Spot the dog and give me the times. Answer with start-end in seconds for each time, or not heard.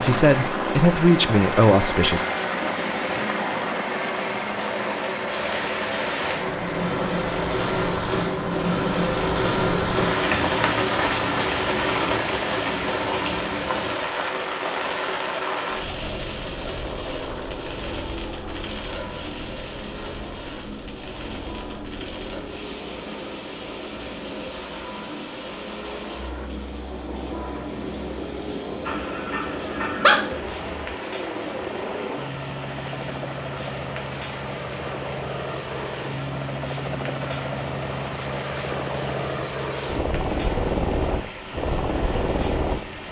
28.9-30.2.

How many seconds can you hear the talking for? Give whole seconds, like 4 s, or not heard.
2 s.